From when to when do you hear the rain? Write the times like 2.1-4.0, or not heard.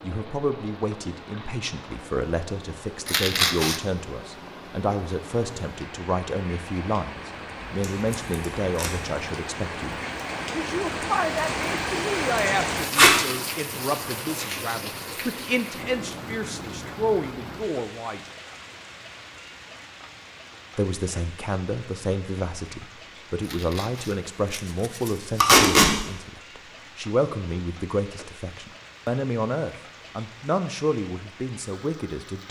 0.0-32.4.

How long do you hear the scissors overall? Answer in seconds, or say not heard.
3 s.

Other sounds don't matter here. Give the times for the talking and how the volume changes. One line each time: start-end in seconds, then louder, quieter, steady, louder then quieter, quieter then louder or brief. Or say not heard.
0.0-18.2 steady
20.8-32.4 steady.